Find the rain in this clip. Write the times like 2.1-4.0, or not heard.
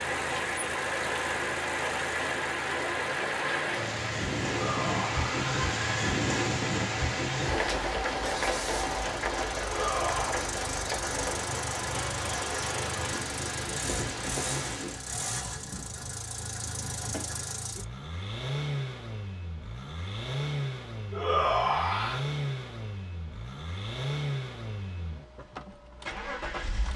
0.0-15.1.